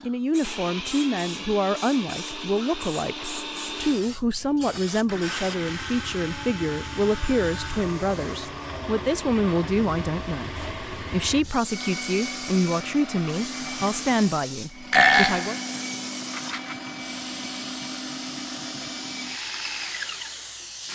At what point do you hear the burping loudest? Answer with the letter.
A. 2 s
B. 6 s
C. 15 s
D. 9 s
C.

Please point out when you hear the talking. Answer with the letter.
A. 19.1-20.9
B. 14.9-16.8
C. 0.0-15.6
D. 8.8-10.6
C.